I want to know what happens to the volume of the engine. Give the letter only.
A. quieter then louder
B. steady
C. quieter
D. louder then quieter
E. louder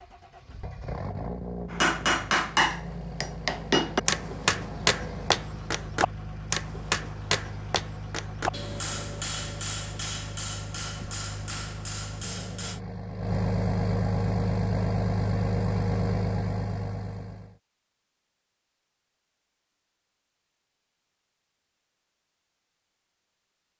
E.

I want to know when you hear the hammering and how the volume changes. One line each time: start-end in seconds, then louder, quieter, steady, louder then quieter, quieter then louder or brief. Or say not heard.
1.7-12.8 quieter.